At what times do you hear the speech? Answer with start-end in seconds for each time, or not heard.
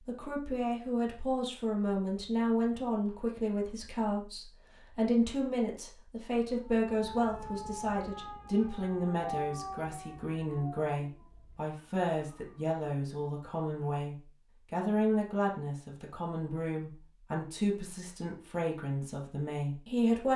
0.0-20.3.